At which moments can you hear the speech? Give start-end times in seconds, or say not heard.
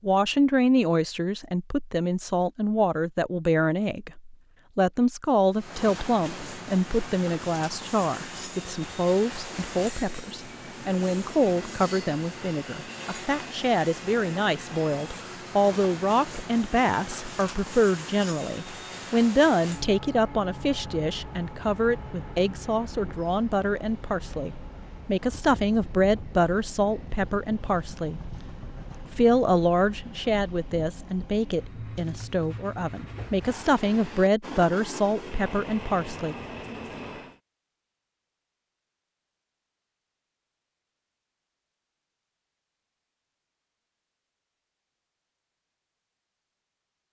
0.0-28.2, 29.1-36.4.